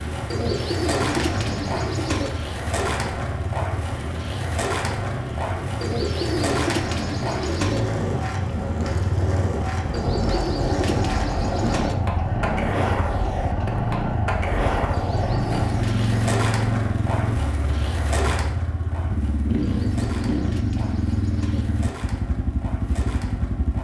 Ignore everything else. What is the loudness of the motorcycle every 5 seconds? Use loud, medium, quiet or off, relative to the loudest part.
medium, medium, loud, loud, loud.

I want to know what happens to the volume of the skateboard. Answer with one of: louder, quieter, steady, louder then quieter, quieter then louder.
quieter.